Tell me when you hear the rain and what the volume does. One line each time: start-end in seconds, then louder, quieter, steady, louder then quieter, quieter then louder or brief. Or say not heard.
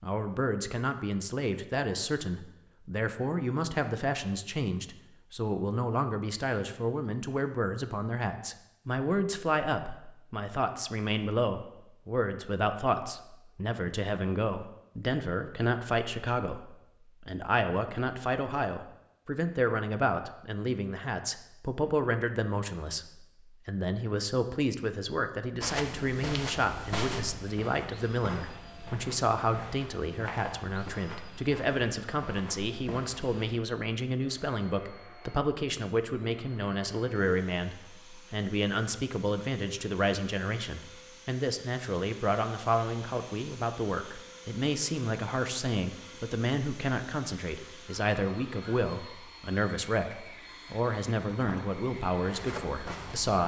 not heard.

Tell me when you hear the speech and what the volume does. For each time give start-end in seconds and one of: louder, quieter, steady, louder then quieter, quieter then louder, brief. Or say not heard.
0.0-53.4 steady.